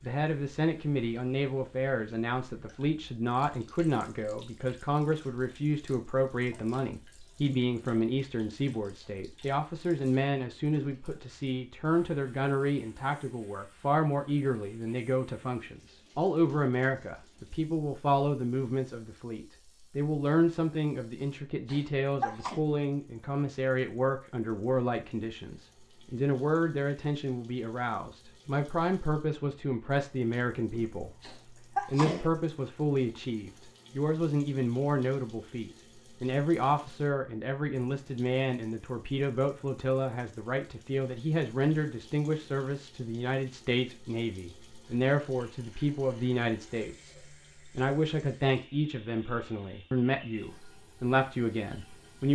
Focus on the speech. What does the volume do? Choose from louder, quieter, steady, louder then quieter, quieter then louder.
steady.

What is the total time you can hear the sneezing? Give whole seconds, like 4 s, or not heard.
3 s.